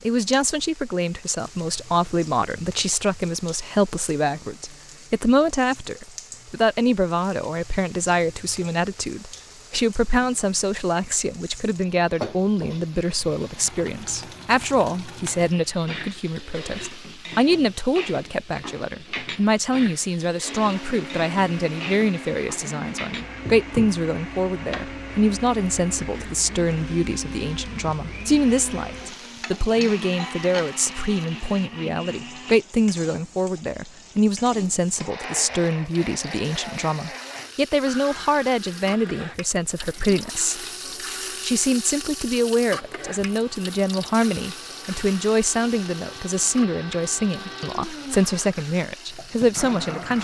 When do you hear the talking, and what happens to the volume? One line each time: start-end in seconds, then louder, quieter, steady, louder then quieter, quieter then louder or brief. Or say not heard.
0.0-40.6 steady
41.4-50.2 steady.